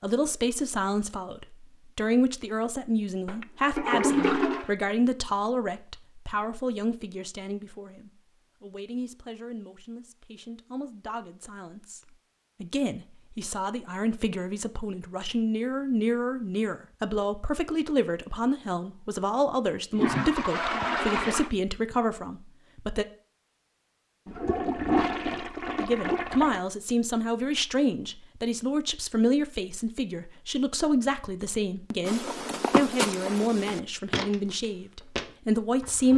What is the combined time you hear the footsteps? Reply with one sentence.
You can hear the footsteps for 4 seconds altogether.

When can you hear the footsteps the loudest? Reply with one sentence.
The loudest moment of the footsteps is at 33 seconds.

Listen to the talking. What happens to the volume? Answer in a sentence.
The volume of the talking goes down, then up.